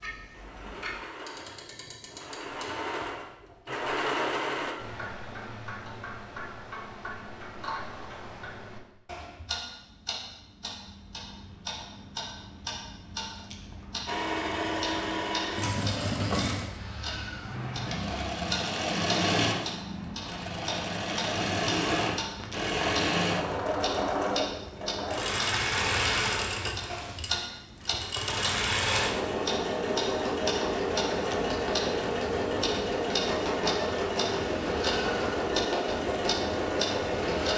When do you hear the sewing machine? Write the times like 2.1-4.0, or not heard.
0.2-4.8, 14.1-37.5.